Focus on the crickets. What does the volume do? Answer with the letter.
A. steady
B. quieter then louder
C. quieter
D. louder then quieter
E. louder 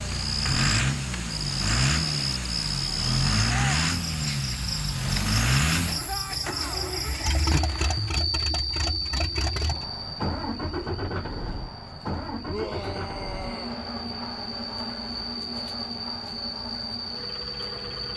B.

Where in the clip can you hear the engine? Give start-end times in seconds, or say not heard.
0.0-18.1.